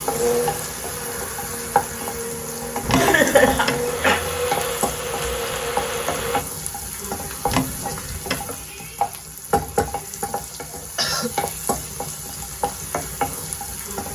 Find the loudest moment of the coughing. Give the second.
3 s.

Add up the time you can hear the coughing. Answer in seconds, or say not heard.
2 s.